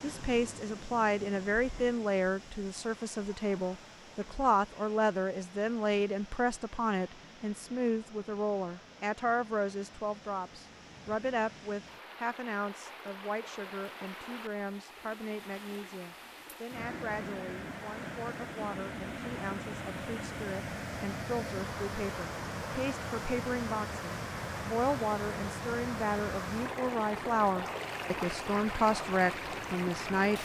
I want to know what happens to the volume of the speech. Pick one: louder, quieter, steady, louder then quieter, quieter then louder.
quieter then louder.